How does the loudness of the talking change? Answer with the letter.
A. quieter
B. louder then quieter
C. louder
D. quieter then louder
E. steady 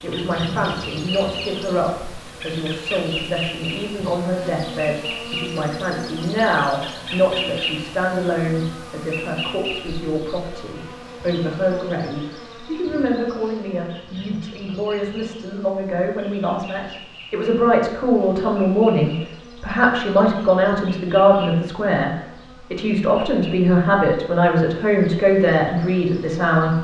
C.